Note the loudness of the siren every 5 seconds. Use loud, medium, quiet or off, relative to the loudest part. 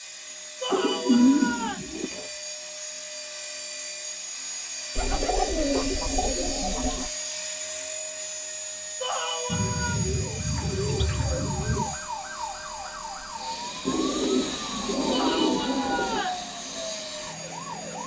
off, off, loud, loud.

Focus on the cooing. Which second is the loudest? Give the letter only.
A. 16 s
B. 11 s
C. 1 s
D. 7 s
C.